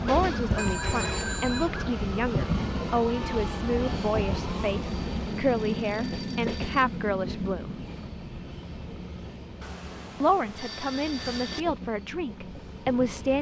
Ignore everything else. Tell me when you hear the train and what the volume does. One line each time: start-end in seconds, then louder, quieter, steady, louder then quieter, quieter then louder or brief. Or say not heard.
0.0-13.3 quieter.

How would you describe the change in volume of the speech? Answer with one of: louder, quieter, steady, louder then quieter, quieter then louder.
steady.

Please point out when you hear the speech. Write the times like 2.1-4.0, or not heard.
0.0-7.8, 10.2-13.3.